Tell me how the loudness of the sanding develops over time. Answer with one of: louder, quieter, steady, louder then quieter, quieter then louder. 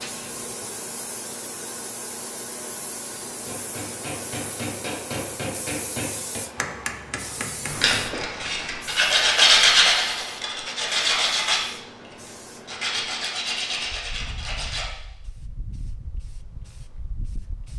quieter.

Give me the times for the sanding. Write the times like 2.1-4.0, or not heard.
7.8-14.9.